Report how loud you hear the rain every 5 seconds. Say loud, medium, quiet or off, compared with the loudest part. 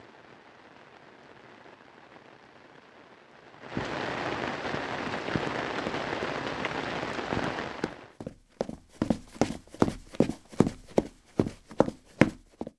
medium, loud, off.